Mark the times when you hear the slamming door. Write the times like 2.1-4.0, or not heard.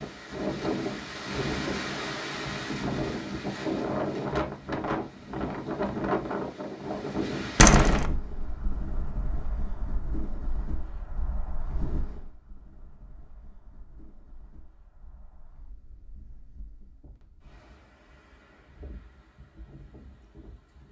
7.5-8.1.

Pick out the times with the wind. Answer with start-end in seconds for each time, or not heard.
0.0-20.8.